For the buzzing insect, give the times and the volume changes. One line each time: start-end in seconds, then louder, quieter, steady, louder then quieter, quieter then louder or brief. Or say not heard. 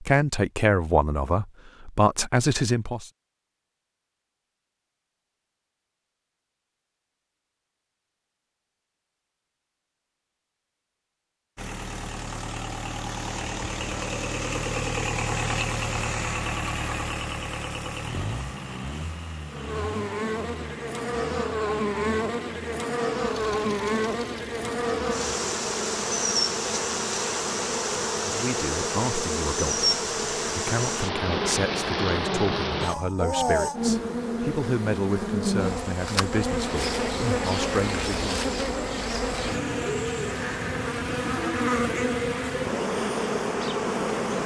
19.5-44.4 steady.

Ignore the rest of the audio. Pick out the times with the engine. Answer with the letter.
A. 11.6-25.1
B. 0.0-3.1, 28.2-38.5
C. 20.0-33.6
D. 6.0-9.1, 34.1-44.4
A.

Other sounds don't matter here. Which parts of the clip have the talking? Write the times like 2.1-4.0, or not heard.
0.0-3.1, 28.2-38.5.